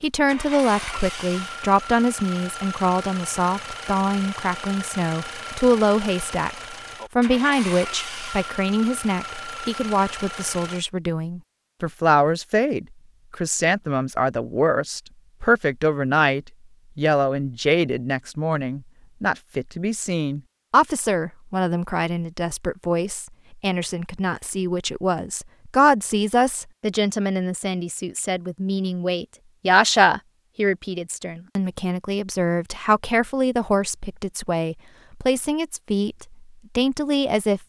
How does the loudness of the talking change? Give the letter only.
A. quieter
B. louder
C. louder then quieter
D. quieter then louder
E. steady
E.